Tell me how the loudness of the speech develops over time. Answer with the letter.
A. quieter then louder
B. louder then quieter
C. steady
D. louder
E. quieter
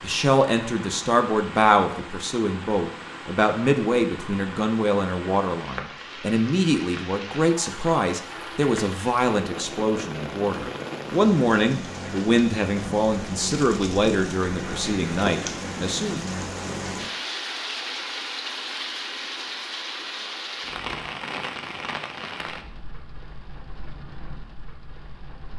C.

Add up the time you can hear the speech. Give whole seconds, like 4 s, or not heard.
16 s.